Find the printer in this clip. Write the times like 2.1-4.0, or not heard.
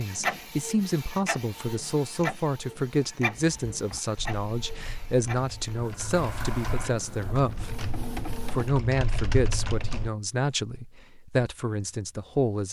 0.0-8.7.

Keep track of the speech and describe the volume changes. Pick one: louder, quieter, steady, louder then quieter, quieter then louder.
steady.